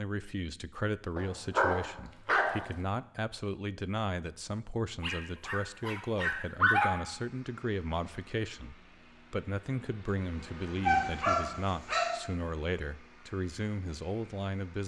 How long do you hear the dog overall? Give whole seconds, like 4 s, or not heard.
5 s.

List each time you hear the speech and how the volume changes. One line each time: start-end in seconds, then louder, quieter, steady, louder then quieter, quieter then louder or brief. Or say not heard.
0.0-14.8 steady.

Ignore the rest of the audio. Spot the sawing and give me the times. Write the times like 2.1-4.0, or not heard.
not heard.